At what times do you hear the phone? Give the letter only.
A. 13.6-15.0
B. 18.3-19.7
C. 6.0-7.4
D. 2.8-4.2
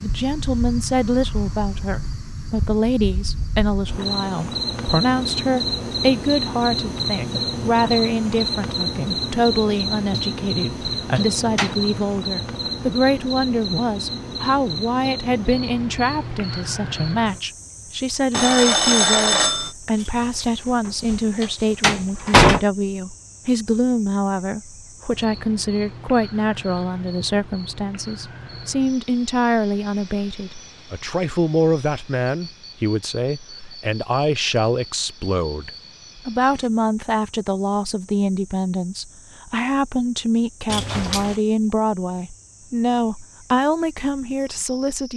B.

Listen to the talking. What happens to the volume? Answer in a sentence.
The volume of the talking stays about the same.